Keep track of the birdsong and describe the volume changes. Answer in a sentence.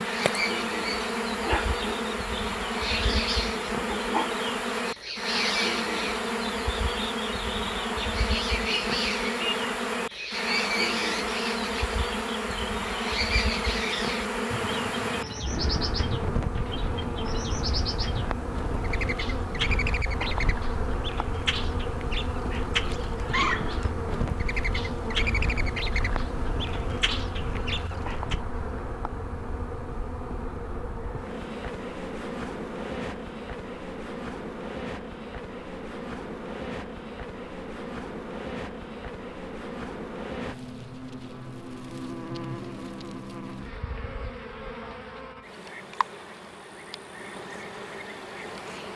The volume of the birdsong stays about the same.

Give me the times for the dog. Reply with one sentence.
The dog can't be heard in this clip.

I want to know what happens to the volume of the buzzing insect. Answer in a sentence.
The volume of the buzzing insect goes down.